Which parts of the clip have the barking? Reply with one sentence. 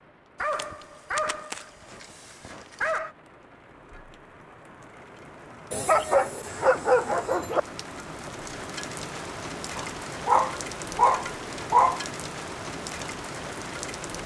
You can hear the barking from 0.3 to 3.1 s, from 5.7 to 7.6 s and from 9.8 to 12.0 s.